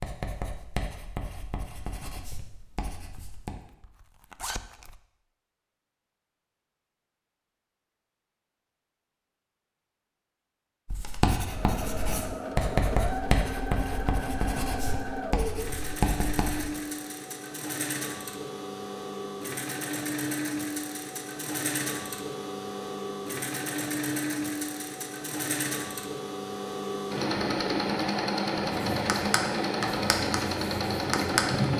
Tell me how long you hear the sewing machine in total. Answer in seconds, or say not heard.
20 s.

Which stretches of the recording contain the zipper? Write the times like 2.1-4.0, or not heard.
3.6-5.0.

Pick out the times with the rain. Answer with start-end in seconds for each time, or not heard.
not heard.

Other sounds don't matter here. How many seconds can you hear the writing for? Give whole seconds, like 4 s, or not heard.
12 s.